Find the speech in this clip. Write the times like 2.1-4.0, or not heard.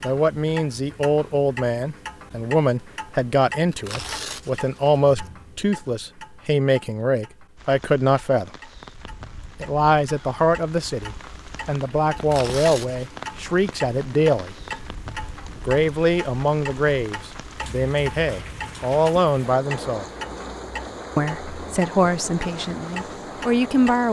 0.0-8.5, 9.6-14.6, 15.7-20.1, 21.1-24.0.